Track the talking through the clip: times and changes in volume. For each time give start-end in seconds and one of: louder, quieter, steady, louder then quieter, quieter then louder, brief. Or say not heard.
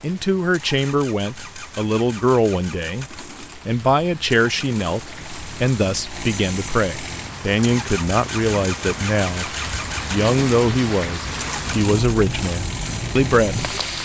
0.0-13.8 steady.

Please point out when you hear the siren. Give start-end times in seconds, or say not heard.
not heard.